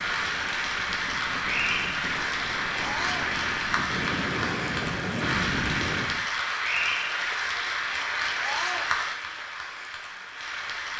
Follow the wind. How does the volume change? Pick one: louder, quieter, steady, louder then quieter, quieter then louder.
louder.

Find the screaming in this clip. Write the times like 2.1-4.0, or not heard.
2.8-3.3, 8.4-8.9.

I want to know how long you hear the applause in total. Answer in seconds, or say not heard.
11 s.